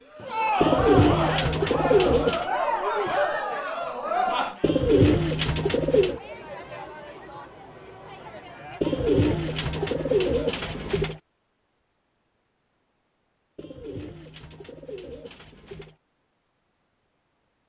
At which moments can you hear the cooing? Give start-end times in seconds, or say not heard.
0.6-2.5, 4.6-6.2, 8.8-11.2, 13.6-15.9.